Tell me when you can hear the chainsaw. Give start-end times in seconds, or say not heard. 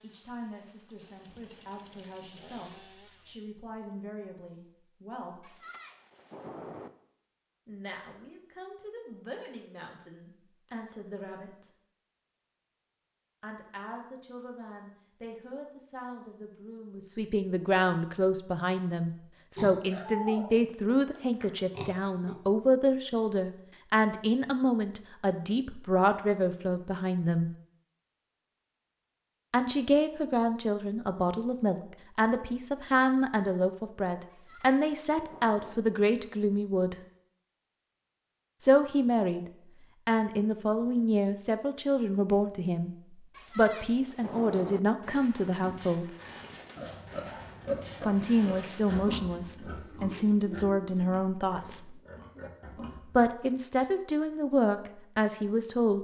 0.0-3.4.